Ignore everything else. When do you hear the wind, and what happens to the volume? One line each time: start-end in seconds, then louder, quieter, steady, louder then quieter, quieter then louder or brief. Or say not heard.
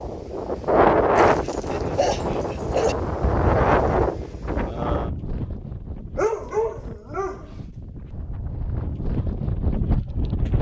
0.0-10.5 quieter then louder.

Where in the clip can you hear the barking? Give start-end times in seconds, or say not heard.
1.1-3.0, 6.2-7.5.